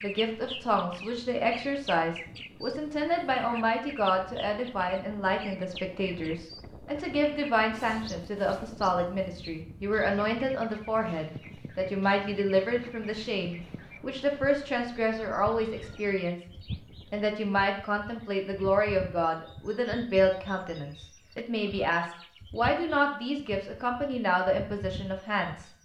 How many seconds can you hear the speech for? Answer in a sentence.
The speech can be heard for 25 seconds in total.